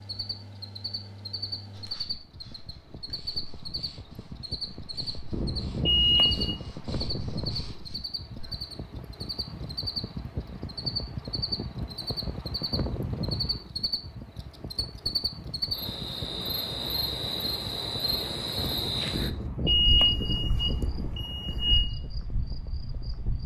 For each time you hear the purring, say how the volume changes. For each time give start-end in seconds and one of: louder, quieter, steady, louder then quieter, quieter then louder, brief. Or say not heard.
not heard.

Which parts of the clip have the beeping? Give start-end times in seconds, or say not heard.
5.3-6.6, 19.1-21.9.